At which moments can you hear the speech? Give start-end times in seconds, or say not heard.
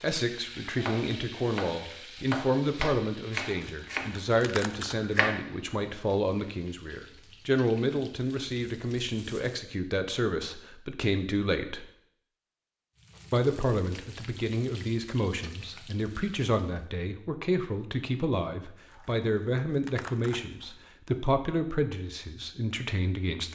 0.0-11.8, 13.3-23.5.